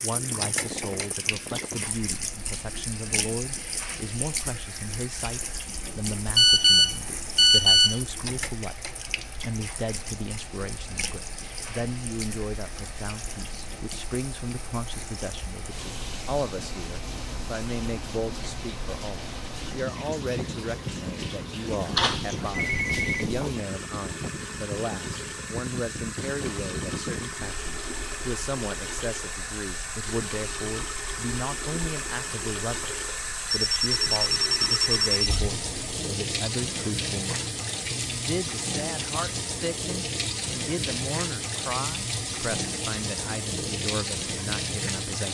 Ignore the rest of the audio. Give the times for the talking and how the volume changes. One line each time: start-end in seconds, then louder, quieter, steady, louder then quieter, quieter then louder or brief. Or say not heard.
0.0-45.3 steady.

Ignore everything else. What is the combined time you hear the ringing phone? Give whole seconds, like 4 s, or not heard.
5 s.